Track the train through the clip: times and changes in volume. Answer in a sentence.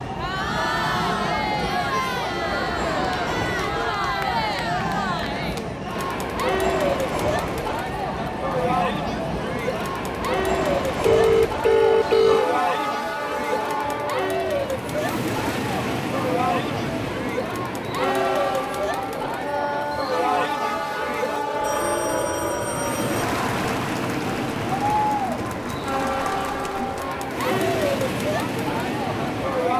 The train can be heard from 0.0 to 29.7 s, at a steady volume.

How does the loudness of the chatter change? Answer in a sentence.
The volume of the chatter stays about the same.